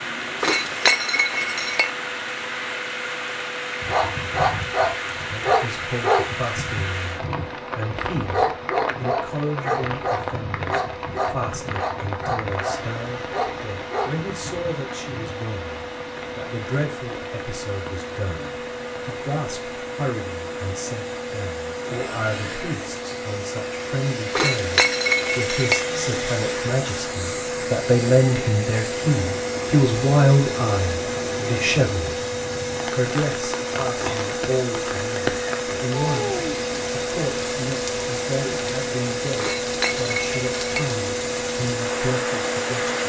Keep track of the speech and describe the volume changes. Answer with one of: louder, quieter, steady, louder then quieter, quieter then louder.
louder then quieter.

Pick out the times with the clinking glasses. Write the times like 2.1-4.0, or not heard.
0.4-1.9, 24.3-25.9, 39.4-40.9.